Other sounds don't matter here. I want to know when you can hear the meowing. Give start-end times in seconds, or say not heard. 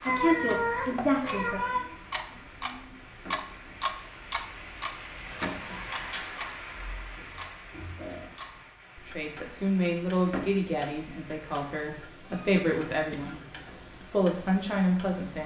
0.1-1.9, 5.7-6.3, 12.3-13.3.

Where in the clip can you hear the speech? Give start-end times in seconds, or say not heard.
0.0-1.6, 9.1-15.4.